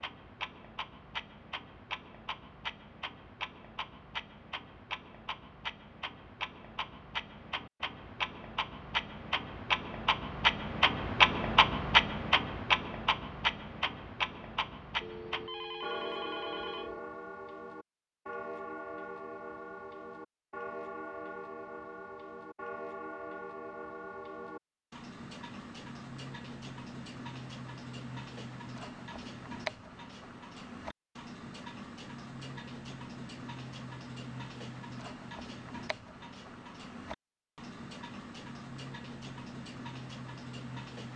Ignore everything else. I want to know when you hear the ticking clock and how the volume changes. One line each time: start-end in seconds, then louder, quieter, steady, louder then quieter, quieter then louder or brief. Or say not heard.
0.0-41.1 louder then quieter.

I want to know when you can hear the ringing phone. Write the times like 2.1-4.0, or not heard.
15.0-17.0.